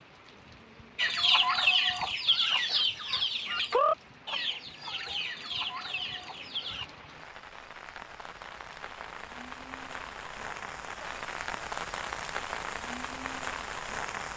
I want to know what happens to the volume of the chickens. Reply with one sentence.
The volume of the chickens goes down.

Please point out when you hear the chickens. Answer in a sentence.
The chickens can be heard from 0.9 to 6.8 s.